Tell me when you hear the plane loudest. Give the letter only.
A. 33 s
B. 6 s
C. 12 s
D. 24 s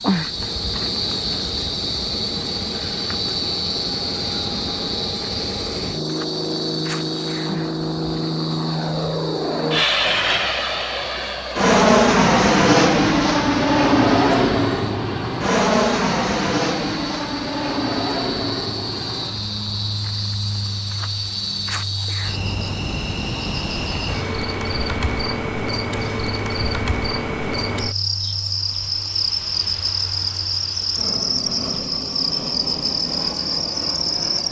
C.